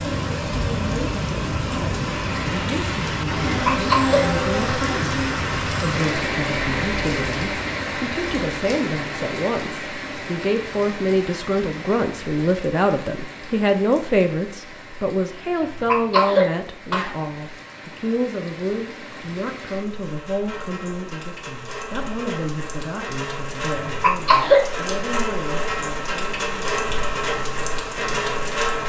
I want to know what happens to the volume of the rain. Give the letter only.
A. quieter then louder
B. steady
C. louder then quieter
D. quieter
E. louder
A.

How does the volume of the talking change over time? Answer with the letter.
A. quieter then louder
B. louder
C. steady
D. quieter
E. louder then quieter
E.